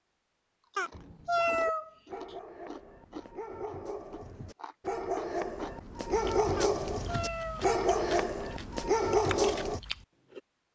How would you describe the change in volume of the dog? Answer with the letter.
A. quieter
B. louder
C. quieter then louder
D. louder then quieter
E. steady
B.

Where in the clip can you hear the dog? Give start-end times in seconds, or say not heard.
0.9-9.8.